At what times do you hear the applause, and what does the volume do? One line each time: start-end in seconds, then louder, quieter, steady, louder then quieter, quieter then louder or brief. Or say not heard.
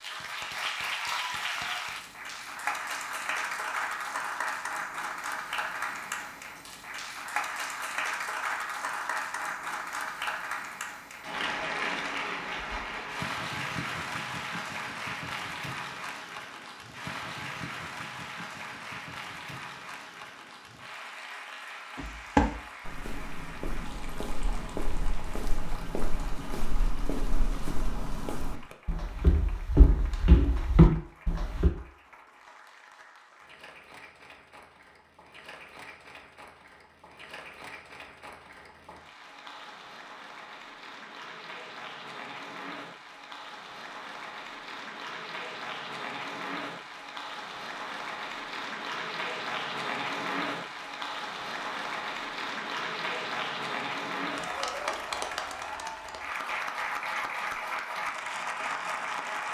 0.0-59.4 quieter then louder.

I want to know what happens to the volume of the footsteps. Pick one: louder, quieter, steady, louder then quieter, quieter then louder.
quieter then louder.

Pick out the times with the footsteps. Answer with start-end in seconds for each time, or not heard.
21.9-31.7.